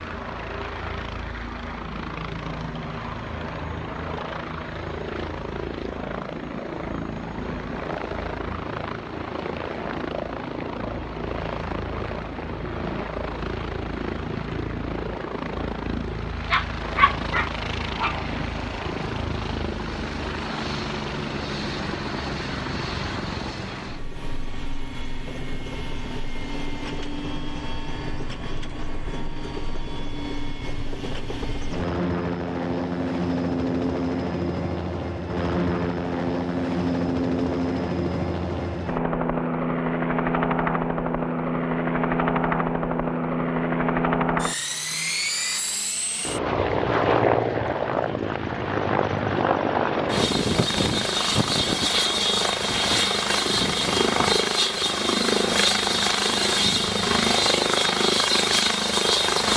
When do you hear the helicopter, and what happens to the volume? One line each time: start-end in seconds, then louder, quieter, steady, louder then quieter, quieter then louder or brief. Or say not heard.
0.0-59.5 louder.